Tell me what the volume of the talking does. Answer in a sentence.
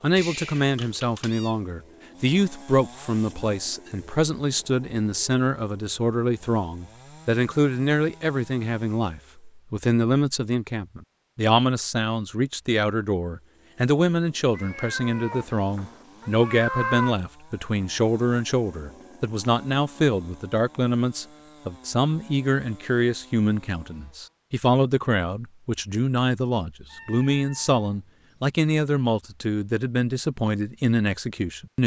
The volume of the talking stays about the same.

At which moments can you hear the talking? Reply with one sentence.
You can hear the talking from 0.0 to 31.8 s.